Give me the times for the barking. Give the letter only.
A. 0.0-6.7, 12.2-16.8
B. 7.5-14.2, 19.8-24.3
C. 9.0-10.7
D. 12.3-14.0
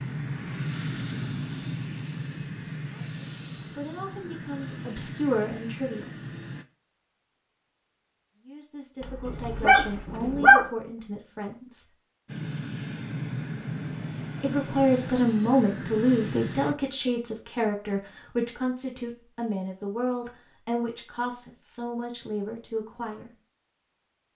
C.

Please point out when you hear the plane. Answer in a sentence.
You can hear the plane from 0.0 to 6.7 s and from 12.2 to 16.8 s.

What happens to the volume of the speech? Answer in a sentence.
The volume of the speech goes up, then down.